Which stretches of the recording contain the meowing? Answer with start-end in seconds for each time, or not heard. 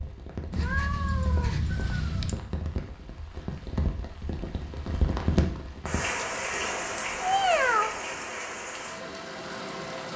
0.5-2.4, 6.2-8.0.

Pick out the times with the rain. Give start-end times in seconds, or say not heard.
0.0-10.1.